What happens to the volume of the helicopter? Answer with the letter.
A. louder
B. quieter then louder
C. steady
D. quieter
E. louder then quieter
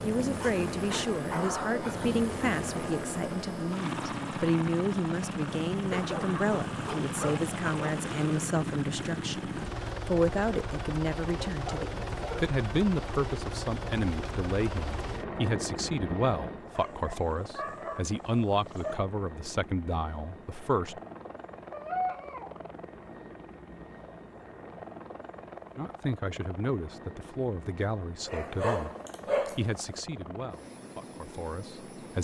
D.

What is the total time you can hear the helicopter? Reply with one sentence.
The helicopter can be heard for 32 seconds in total.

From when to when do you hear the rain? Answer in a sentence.
You can't hear the rain here.